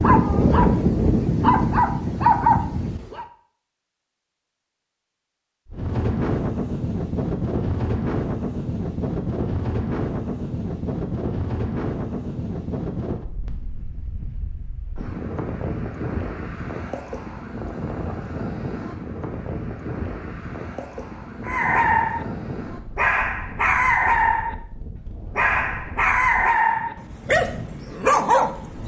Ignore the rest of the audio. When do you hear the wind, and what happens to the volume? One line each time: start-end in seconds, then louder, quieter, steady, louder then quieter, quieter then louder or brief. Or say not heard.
5.7-28.8 quieter.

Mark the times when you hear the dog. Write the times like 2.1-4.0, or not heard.
0.0-3.2, 21.4-22.2, 22.9-28.8.